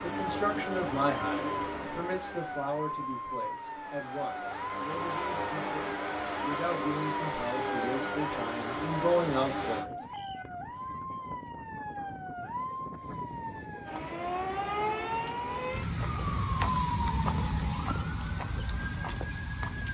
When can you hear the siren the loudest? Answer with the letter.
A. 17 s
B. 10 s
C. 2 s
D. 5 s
A.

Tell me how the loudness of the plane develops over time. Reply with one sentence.
The loudness of the plane goes down, then up.